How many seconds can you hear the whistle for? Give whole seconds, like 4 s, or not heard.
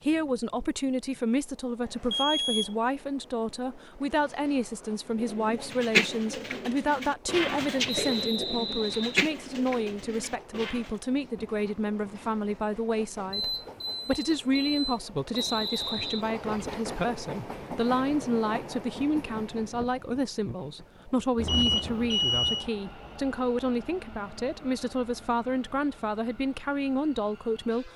2 s.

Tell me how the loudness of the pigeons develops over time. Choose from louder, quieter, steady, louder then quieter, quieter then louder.
quieter.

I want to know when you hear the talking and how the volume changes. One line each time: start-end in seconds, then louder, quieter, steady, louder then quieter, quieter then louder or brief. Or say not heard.
0.0-27.9 steady.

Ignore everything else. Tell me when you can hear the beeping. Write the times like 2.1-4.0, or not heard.
2.1-2.8, 13.3-15.0, 21.4-22.6.